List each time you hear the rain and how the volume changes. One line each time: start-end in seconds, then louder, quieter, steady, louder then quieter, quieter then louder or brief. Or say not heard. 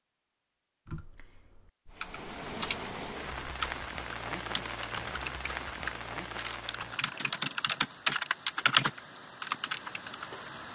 1.9-10.6 quieter.